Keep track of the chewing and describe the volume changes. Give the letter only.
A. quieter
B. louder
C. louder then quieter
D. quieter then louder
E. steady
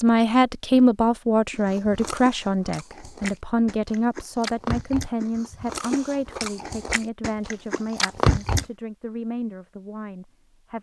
B.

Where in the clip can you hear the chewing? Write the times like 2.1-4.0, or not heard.
1.5-8.7.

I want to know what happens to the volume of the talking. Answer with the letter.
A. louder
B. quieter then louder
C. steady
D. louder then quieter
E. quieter
E.